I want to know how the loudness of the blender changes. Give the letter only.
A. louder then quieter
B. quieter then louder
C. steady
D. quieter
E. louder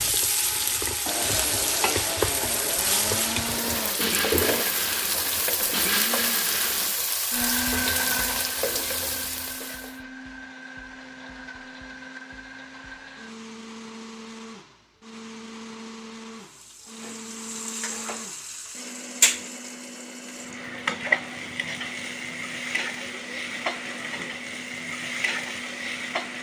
D.